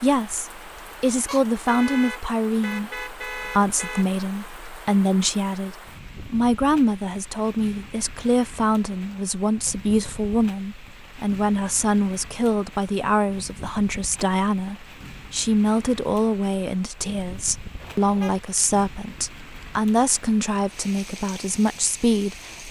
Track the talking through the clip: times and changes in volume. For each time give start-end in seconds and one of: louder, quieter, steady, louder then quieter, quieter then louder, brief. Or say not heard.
0.0-22.6 steady.